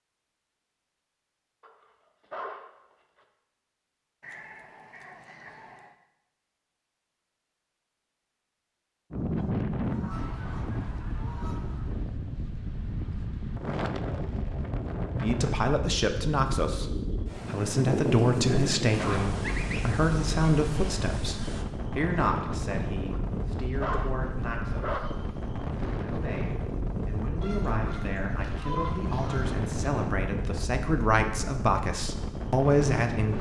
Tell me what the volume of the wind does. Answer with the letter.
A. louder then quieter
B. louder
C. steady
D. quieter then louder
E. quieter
C.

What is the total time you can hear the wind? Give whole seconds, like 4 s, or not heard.
24 s.